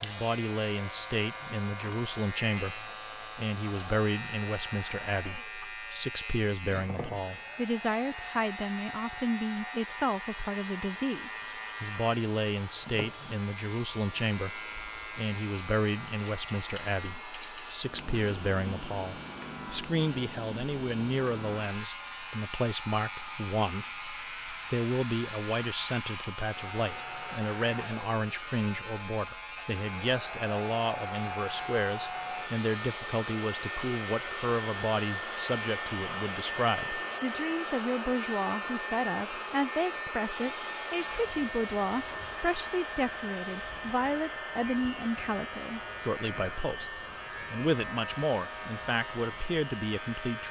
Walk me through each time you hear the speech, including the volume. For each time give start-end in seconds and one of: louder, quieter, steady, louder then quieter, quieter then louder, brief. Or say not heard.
0.0-50.4 steady.